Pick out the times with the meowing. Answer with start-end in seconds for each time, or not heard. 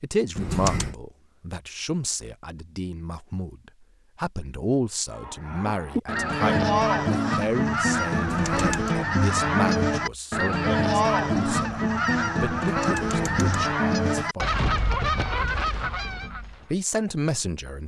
0.3-0.9, 8.1-8.9, 12.8-13.7.